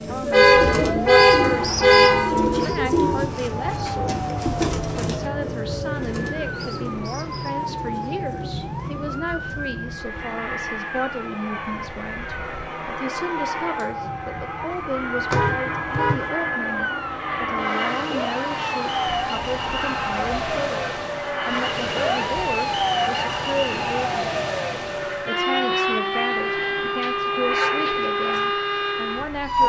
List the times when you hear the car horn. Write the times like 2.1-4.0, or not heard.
0.3-2.3, 15.3-16.2, 26.1-28.1.